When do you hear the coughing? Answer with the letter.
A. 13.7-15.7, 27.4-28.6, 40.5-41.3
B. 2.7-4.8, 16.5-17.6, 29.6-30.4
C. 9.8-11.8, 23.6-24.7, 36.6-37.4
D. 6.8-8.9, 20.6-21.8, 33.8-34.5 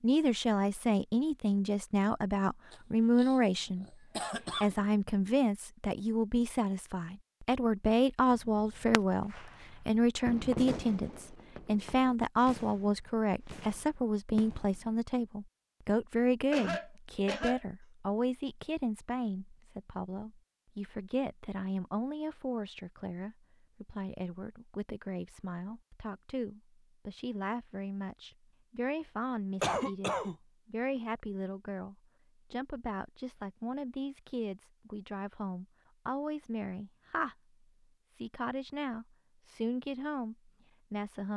B.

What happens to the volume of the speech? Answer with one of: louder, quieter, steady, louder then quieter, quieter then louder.
quieter.